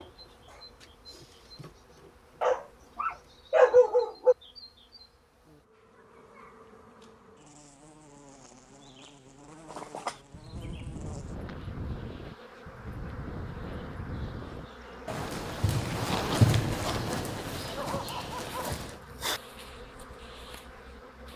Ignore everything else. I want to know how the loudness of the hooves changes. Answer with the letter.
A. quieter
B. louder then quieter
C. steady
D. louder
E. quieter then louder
B.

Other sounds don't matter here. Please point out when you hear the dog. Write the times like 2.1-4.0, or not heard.
2.4-4.3, 17.8-19.4.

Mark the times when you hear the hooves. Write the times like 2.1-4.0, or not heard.
9.7-19.0.